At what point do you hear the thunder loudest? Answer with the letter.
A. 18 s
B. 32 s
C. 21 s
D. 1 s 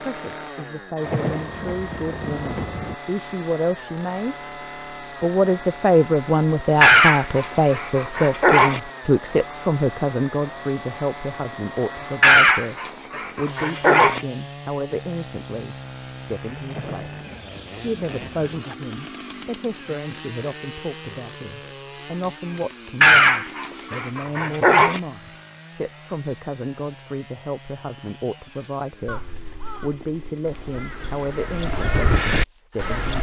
D.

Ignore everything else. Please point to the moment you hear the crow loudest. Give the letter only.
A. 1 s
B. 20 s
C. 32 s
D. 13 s
C.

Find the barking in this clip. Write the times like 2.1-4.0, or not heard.
6.8-8.8, 12.2-14.2, 23.0-25.0.